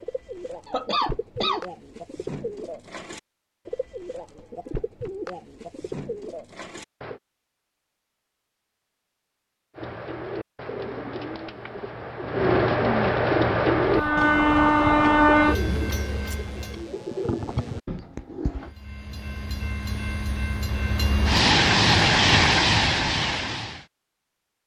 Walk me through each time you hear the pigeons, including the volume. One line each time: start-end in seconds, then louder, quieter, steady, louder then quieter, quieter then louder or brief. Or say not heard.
0.0-7.2 steady
9.8-18.7 louder then quieter.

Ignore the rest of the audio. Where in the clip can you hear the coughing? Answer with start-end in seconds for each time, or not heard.
0.7-1.6.